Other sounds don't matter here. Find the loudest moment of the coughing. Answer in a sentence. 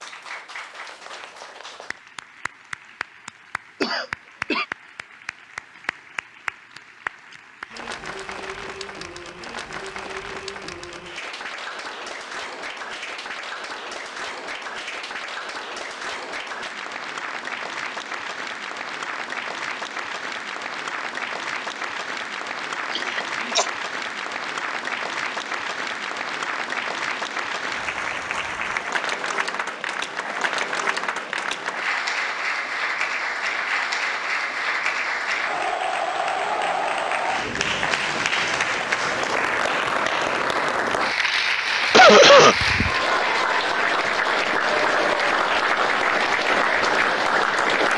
The loudest moment of the coughing is at 42 seconds.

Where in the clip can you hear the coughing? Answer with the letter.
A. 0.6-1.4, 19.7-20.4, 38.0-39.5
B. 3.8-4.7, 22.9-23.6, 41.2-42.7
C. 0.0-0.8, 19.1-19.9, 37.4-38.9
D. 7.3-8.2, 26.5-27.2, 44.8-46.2
B.